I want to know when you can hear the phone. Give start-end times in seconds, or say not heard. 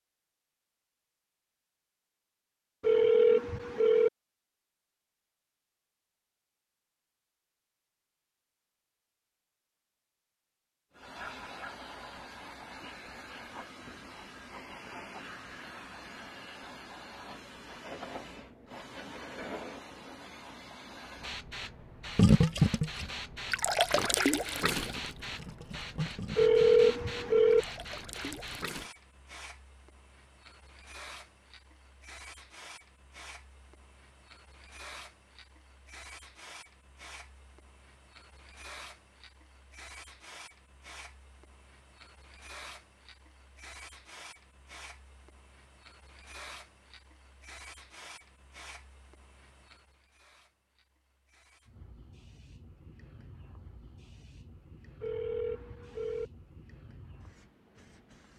2.8-4.1, 26.4-27.6, 55.0-56.3.